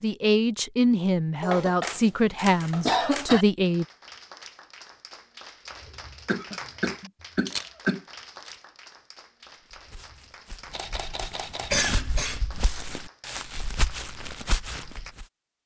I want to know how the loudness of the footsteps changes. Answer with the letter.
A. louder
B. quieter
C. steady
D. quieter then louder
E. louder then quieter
A.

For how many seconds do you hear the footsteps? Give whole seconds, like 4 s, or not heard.
6 s.